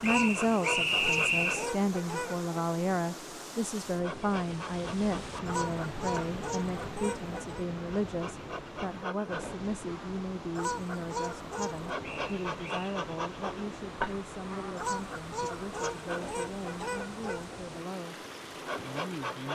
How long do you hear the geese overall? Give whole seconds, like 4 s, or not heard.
9 s.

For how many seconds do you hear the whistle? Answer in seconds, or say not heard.
3 s.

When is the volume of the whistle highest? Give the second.
1 s.